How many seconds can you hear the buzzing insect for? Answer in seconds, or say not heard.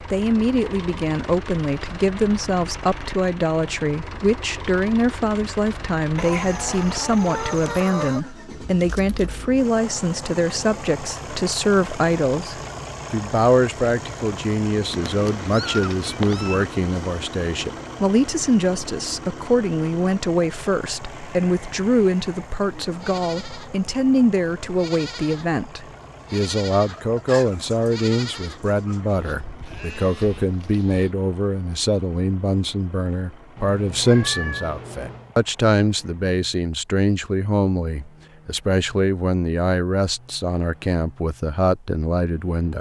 not heard.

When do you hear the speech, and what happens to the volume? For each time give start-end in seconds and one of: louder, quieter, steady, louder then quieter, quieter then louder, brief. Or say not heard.
0.0-42.7 steady.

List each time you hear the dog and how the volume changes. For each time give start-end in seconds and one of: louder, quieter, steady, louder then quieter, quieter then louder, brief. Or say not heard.
not heard.